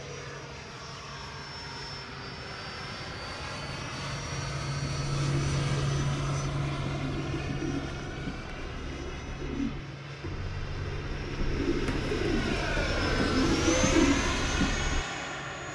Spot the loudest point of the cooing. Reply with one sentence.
The loudest moment of the cooing is at 14 seconds.